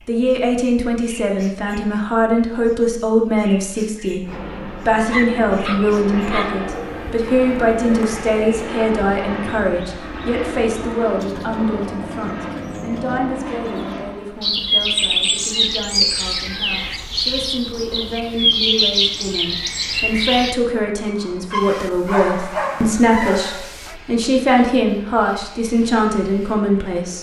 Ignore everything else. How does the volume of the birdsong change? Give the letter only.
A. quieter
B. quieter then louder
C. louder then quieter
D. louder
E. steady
D.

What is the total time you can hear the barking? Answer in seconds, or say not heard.
4 s.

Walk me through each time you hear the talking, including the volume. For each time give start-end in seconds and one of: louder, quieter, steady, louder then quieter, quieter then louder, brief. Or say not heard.
0.1-27.1 quieter then louder.